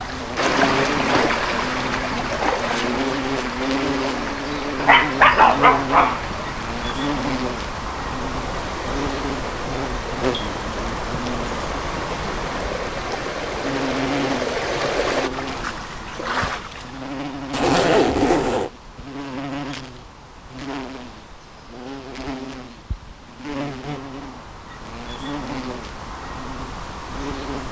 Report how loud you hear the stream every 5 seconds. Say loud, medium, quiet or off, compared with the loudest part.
loud, medium, loud, loud, off, off.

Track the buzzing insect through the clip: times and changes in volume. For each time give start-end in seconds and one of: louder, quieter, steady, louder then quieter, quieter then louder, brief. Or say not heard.
0.0-27.6 quieter.